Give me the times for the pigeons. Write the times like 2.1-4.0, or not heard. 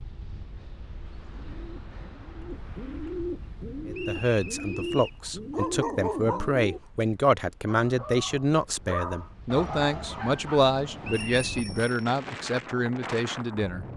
1.1-6.8.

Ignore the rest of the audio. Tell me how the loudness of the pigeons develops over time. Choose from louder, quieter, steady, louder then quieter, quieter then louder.
louder.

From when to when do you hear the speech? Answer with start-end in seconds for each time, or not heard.
3.9-13.8.